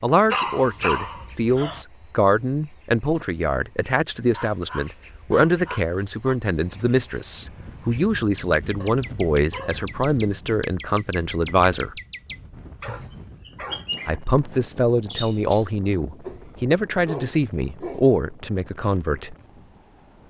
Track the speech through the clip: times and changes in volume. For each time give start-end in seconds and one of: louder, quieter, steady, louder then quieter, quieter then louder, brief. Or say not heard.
0.0-12.0 steady
14.1-19.4 steady.